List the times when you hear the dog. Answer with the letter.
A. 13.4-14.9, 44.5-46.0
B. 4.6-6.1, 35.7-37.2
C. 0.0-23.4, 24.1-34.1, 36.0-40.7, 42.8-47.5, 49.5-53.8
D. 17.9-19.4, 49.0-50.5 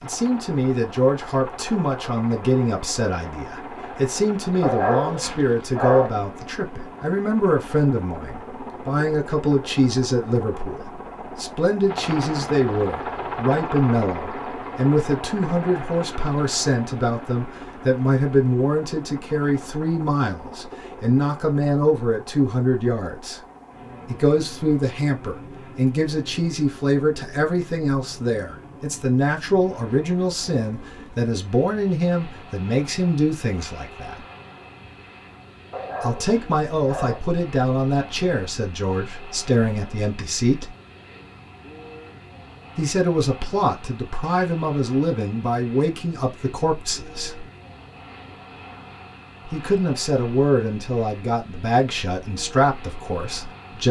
B.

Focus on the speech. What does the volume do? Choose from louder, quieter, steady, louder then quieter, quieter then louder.
steady.